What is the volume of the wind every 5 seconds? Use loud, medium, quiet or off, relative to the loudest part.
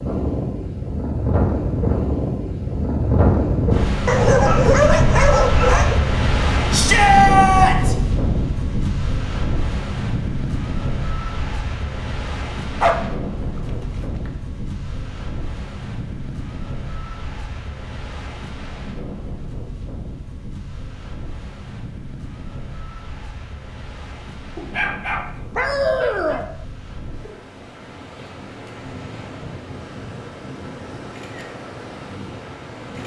loud, loud, medium, quiet, quiet, quiet, quiet.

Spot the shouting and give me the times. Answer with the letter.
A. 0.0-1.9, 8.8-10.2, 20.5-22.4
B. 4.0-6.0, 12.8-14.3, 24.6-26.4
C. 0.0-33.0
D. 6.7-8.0
D.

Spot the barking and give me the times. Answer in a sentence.
You can hear the barking from 4.0 to 6.0 s, from 12.8 to 14.3 s and from 24.6 to 26.4 s.